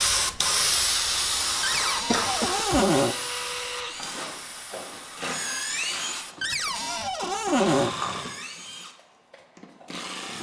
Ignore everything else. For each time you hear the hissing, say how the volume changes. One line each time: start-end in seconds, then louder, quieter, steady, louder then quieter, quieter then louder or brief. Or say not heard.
0.0-6.3 quieter.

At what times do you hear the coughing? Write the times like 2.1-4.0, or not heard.
2.1-2.9, 7.8-8.4.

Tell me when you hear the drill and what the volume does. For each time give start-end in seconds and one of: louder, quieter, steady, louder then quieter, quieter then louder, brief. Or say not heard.
0.0-10.3 louder then quieter.